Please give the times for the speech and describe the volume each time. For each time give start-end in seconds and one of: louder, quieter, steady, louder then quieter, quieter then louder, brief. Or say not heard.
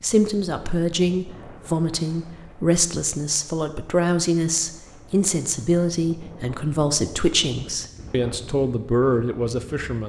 0.0-10.0 steady.